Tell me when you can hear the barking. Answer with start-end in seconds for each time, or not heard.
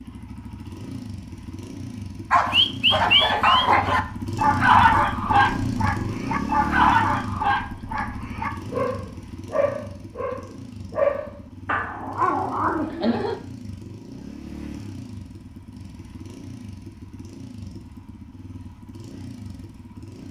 2.3-13.3.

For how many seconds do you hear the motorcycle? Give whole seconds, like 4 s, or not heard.
20 s.